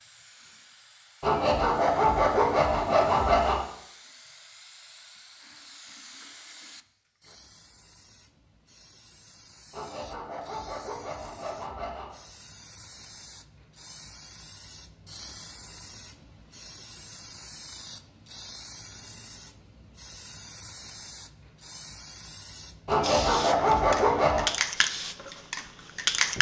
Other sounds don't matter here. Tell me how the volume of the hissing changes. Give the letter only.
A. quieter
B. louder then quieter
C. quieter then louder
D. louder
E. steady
D.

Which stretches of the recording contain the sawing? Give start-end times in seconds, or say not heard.
1.2-3.6, 9.7-12.2, 22.9-24.5.